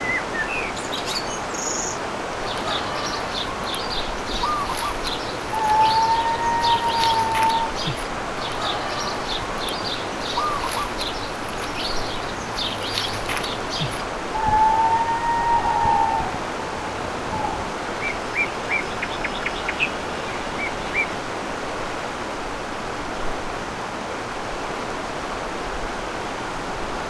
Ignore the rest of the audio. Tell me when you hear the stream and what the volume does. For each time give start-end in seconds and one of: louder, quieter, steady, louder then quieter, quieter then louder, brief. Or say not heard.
0.0-27.0 steady.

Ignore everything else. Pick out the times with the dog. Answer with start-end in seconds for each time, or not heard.
5.5-7.5, 14.4-16.2.